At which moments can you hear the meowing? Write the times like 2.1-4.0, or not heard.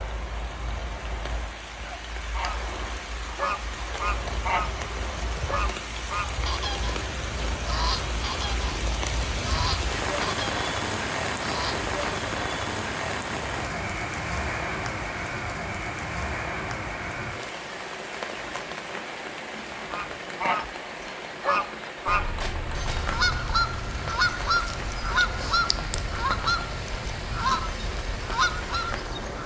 22.1-23.6.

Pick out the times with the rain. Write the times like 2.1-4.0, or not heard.
0.0-29.4.